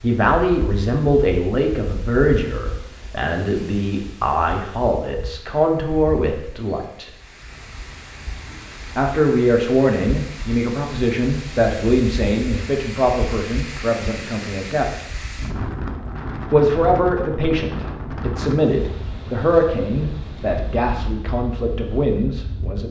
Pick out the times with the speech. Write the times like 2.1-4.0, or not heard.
0.0-7.1, 8.9-14.8, 16.5-22.8.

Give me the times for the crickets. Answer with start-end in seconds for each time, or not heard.
not heard.